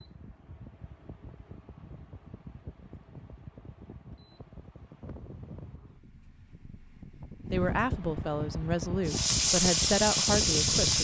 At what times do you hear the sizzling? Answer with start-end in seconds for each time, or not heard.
9.1-10.9.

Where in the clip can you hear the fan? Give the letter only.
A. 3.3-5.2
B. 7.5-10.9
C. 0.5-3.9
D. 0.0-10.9
D.